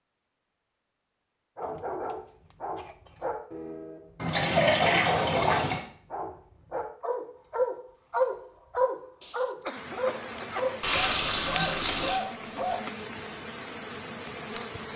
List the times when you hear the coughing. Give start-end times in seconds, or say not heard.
1.6-3.3, 9.2-10.8.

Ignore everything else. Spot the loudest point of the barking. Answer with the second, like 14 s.
8 s.